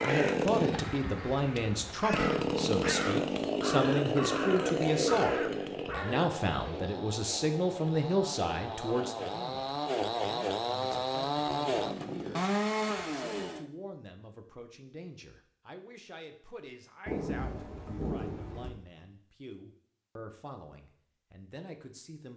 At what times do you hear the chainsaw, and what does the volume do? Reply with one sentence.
You can hear the chainsaw from 0.0 to 13.7 s, getting quieter then louder.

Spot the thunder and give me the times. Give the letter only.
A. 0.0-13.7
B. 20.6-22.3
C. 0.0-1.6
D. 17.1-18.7
D.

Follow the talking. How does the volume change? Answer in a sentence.
The volume of the talking goes down.